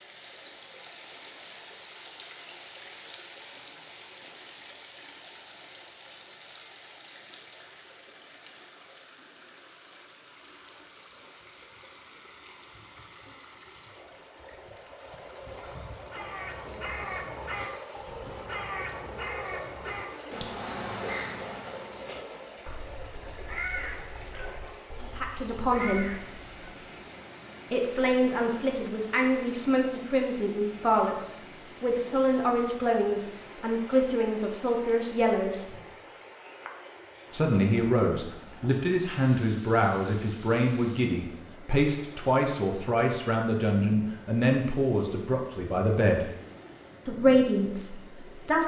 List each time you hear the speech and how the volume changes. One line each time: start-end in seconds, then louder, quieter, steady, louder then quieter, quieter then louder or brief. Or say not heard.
25.0-26.1 brief
27.7-35.7 steady
37.3-46.3 steady
47.0-48.6 brief.